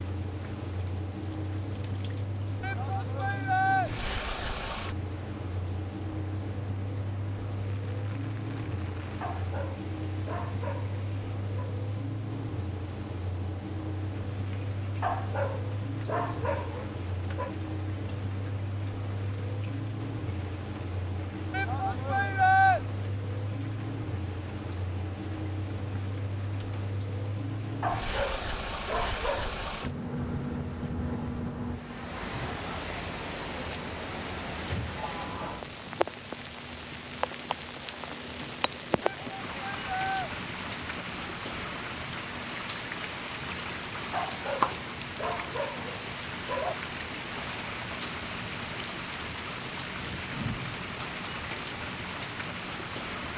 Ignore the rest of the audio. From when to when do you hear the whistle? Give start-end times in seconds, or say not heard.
not heard.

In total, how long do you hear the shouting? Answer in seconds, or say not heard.
4 s.